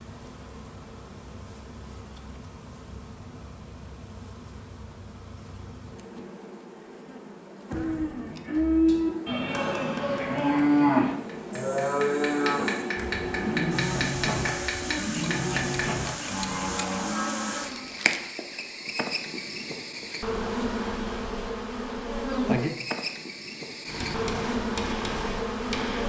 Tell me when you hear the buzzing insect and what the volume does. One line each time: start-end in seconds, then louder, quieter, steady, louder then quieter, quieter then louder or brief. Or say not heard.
0.0-26.0 louder.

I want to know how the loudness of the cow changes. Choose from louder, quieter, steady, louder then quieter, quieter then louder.
quieter.